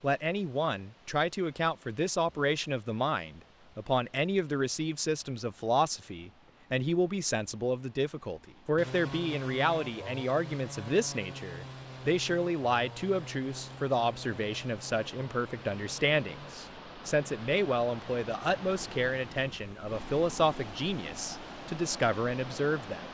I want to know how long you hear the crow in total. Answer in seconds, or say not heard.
not heard.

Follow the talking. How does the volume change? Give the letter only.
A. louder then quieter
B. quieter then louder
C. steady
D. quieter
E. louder
C.